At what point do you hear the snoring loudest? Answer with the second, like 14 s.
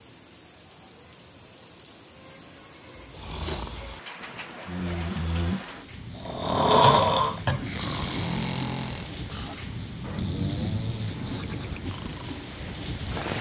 7 s.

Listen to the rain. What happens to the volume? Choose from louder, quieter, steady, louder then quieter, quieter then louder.
louder.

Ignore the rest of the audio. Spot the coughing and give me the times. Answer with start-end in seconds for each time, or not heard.
6.8-7.7.